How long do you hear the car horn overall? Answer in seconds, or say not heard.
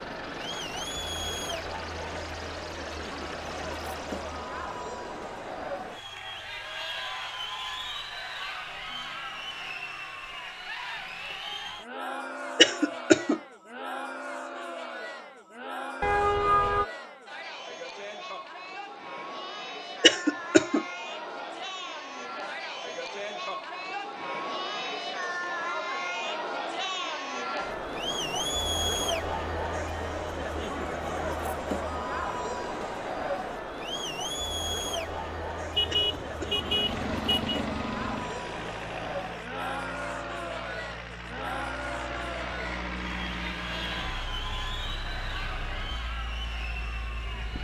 3 s.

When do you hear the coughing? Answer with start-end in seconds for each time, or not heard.
12.6-13.4, 20.0-20.9, 35.9-36.6.